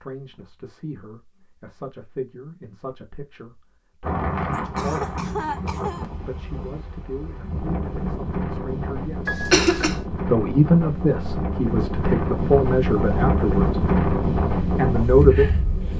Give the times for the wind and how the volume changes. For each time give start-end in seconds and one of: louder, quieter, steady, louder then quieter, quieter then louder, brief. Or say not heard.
4.0-15.9 louder.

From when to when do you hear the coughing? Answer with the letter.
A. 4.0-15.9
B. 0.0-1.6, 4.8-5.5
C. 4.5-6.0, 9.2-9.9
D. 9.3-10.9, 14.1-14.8
C.